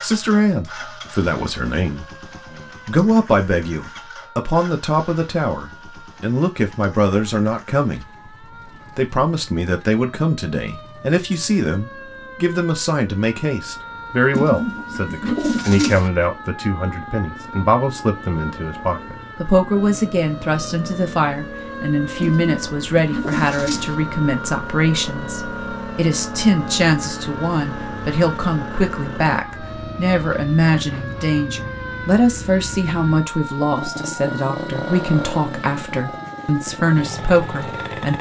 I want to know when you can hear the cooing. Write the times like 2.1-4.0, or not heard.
14.3-16.1, 22.2-23.9.